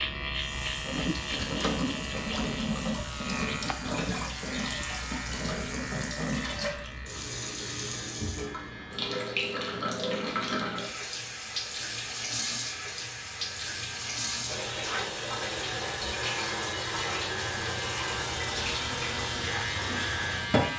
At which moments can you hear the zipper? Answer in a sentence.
The zipper can't be heard in this clip.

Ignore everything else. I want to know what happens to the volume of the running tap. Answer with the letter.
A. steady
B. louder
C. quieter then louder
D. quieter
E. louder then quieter
A.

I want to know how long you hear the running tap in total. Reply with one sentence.
The running tap can be heard for 21 seconds in total.